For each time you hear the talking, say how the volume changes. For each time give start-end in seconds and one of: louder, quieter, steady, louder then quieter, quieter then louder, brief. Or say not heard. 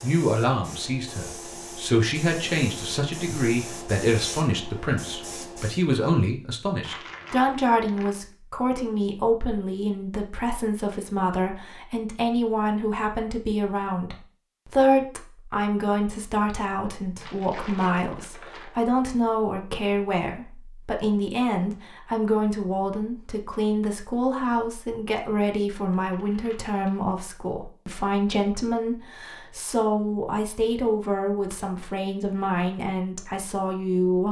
0.0-34.2 steady.